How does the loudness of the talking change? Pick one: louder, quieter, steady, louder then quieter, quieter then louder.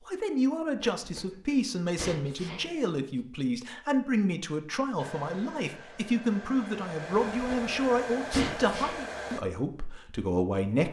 steady.